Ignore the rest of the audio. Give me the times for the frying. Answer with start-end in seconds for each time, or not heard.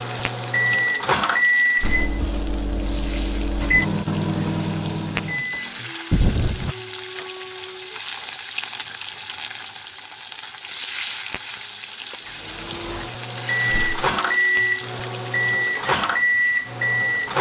0.0-17.3.